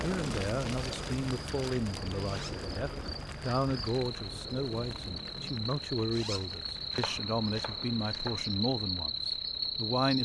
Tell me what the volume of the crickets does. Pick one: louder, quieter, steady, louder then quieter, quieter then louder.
louder.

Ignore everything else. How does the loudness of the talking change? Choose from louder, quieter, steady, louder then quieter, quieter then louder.
steady.